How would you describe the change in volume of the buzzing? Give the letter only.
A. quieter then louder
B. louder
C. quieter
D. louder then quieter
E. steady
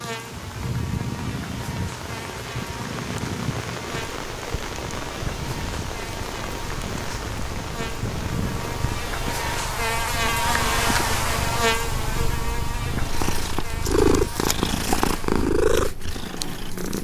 D.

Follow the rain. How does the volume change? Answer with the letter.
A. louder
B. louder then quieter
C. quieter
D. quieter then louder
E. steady
E.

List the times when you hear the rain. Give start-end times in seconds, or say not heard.
0.0-9.8.